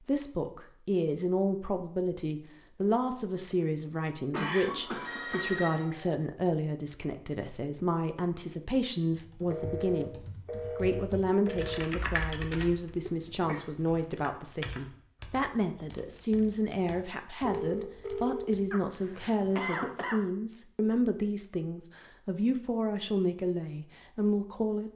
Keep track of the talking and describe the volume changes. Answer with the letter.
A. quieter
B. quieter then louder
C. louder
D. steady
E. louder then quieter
D.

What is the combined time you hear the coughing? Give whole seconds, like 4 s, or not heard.
3 s.